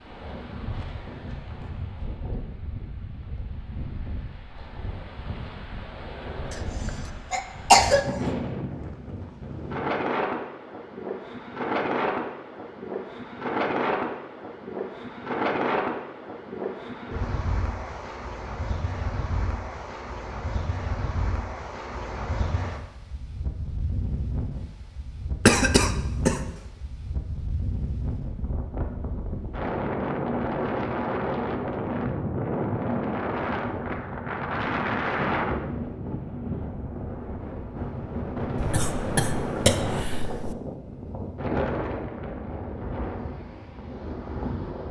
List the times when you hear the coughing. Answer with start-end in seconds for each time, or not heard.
6.5-8.3, 25.4-26.4, 38.5-40.5.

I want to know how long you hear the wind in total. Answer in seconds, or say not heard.
45 s.